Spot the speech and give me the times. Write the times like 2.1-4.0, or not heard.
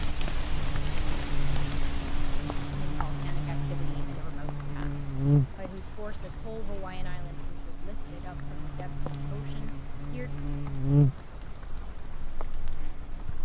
2.9-10.3.